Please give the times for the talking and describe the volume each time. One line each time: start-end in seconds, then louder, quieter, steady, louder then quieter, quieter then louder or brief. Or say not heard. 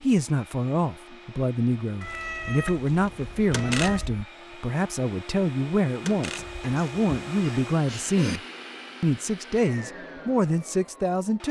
0.0-8.4 steady
9.0-11.4 brief.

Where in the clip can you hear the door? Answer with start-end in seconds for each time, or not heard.
3.5-4.2, 6.0-6.8.